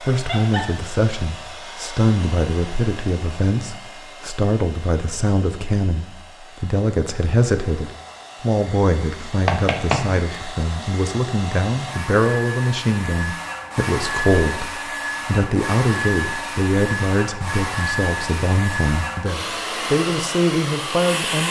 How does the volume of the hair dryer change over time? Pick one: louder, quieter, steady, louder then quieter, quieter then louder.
quieter then louder.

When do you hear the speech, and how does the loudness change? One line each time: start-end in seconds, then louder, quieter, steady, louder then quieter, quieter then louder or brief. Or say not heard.
0.0-21.4 steady.